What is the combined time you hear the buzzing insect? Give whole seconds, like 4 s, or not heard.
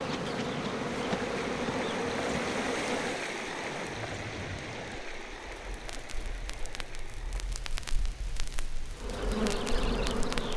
5 s.